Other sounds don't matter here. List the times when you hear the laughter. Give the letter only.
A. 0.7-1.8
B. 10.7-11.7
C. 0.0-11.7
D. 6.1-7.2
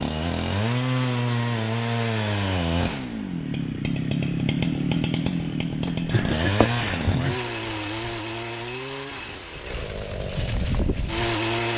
D.